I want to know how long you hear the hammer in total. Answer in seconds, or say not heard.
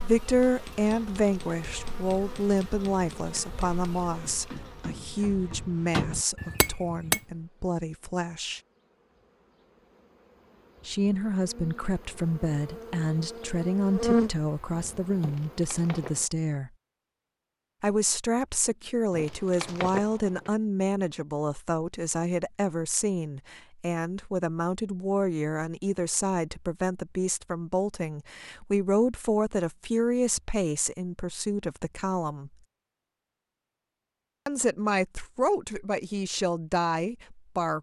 7 s.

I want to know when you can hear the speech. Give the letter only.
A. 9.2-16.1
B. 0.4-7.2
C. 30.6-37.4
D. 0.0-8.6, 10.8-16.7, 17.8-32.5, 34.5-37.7
D.